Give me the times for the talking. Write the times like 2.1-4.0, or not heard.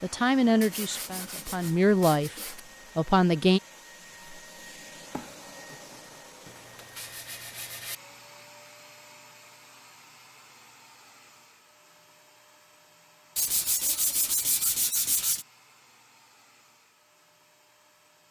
0.0-3.6.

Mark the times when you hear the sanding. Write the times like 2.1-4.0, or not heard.
0.6-2.6, 6.5-8.0, 13.3-15.4.